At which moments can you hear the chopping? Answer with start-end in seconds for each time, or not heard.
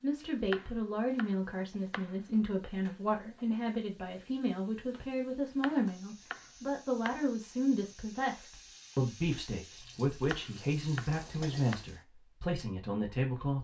0.5-2.1, 5.6-7.3, 10.3-11.8.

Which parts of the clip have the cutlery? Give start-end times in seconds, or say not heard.
not heard.